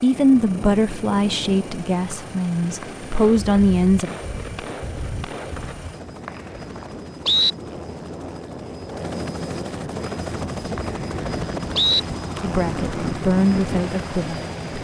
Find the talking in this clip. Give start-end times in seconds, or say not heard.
0.0-4.1, 12.4-14.7.